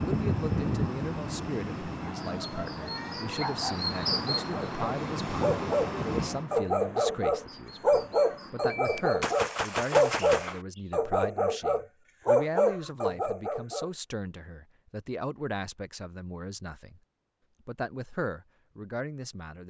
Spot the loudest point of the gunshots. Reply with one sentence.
The loudest moment of the gunshots is at 10 seconds.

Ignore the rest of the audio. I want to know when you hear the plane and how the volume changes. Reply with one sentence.
You can hear the plane from 0.0 to 6.5 s, getting quieter then louder.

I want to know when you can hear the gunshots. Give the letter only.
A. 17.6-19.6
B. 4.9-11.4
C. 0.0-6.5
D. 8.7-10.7
D.